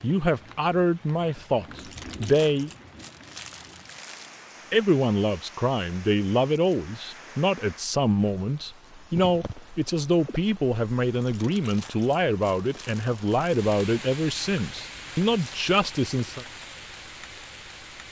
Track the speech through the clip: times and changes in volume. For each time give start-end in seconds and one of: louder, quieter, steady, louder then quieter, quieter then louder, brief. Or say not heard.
0.0-2.7 brief
4.7-16.4 steady.